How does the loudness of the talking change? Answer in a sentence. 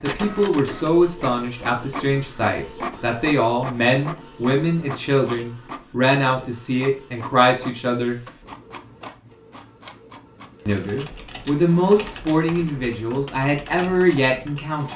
The volume of the talking stays about the same.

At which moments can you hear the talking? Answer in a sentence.
You can hear the talking from 0.0 to 8.2 s and from 10.7 to 14.9 s.